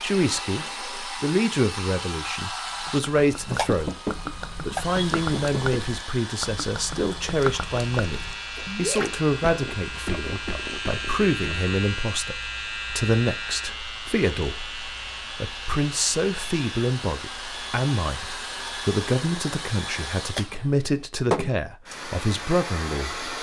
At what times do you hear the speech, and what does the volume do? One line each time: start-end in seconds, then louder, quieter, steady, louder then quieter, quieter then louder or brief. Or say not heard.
0.0-23.3 steady.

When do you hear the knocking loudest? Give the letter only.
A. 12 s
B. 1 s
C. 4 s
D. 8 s
C.